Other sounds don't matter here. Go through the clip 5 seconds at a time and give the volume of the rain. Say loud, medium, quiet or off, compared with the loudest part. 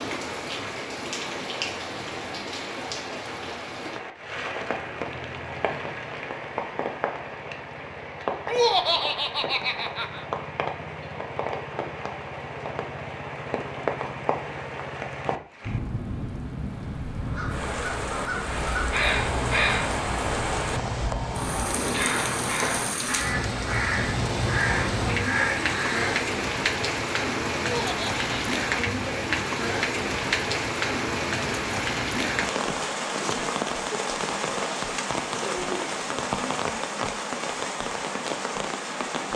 medium, medium, medium, medium, loud, loud, loud, loud.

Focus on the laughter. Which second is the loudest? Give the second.
9 s.